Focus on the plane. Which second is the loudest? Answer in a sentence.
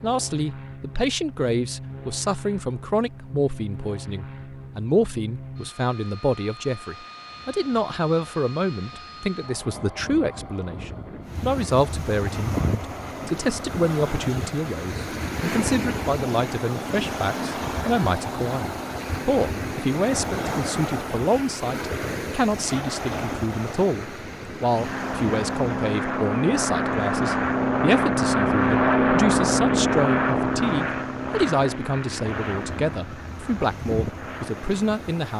The volume of the plane peaks at 29 seconds.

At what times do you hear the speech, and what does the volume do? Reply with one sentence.
The speech can be heard from 0.0 to 35.3 s, at a steady volume.